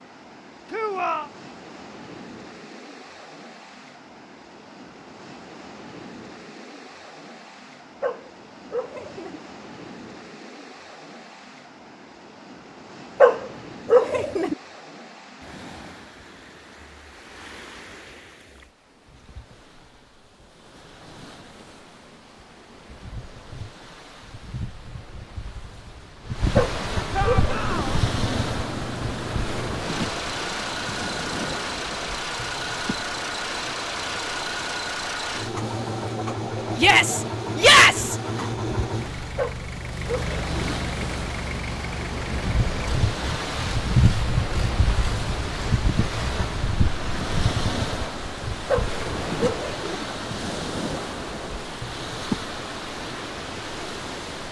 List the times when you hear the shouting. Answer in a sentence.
The shouting can be heard from 0.7 to 1.3 s, from 27.1 to 28.0 s and from 36.8 to 38.1 s.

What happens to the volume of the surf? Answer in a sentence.
The loudness of the surf goes up.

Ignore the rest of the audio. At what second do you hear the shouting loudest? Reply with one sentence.
The volume of the shouting peaks at 38 seconds.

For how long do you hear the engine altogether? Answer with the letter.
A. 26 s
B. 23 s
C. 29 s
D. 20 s
D.